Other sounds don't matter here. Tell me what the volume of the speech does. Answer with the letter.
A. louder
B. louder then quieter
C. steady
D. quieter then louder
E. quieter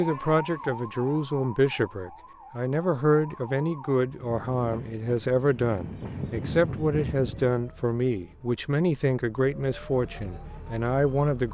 C.